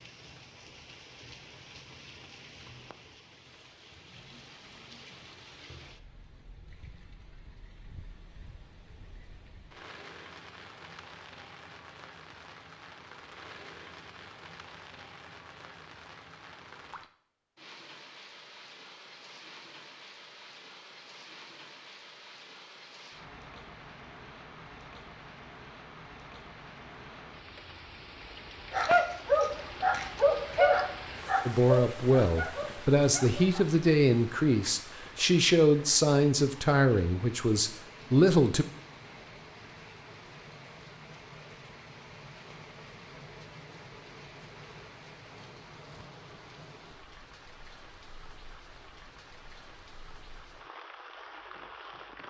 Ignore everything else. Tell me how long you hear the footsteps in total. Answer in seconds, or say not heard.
not heard.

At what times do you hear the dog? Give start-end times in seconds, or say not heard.
28.7-33.8.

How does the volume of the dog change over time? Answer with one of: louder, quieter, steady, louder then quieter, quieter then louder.
quieter.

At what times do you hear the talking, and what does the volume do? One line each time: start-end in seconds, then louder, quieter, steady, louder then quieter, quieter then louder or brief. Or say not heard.
31.4-38.6 steady.